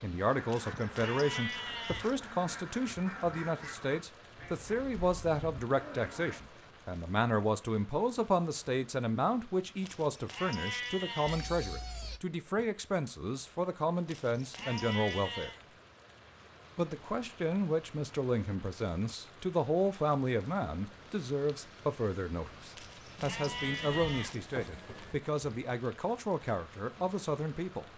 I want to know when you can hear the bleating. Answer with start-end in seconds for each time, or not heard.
0.5-2.1, 9.8-11.4, 14.1-15.6, 22.8-24.4.